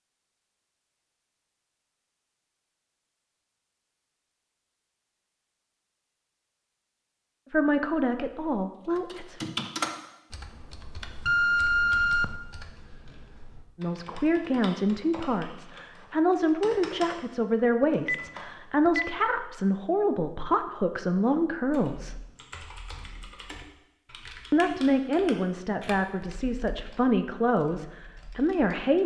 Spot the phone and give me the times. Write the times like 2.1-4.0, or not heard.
11.2-12.3, 17.8-19.1.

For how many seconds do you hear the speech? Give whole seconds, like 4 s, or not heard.
15 s.